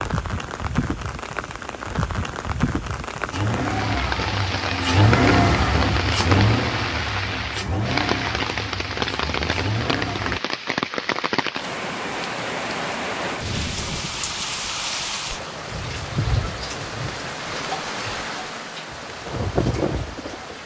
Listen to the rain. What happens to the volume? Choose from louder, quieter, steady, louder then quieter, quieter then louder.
steady.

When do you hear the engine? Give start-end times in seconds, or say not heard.
3.3-10.4.